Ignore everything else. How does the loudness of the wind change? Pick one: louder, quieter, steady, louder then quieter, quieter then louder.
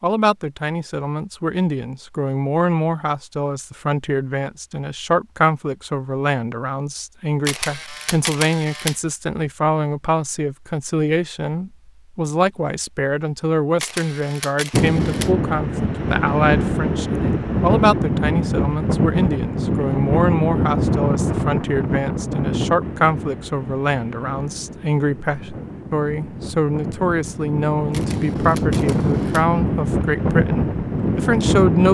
quieter then louder.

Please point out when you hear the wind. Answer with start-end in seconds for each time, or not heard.
14.7-31.8.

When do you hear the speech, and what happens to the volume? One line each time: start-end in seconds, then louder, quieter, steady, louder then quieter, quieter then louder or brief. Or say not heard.
0.0-31.8 steady.